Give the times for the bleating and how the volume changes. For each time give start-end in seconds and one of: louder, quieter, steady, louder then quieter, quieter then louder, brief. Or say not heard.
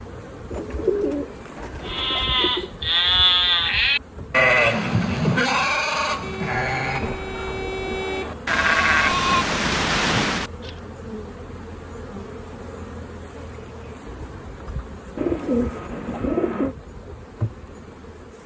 1.9-10.7 quieter then louder.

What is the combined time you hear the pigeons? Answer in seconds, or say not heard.
5 s.